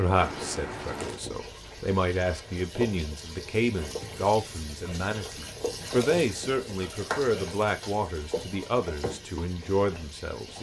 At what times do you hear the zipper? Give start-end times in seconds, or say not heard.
0.2-1.2.